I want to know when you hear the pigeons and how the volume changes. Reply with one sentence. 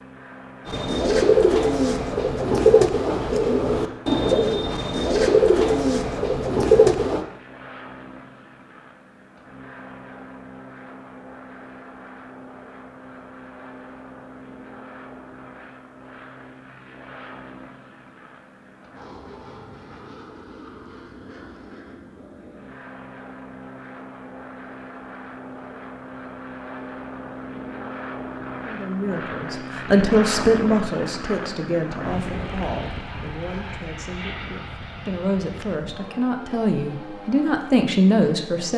You can hear the pigeons from 0.7 to 7.2 s, at a steady volume.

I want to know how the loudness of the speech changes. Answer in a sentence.
The volume of the speech goes down, then up.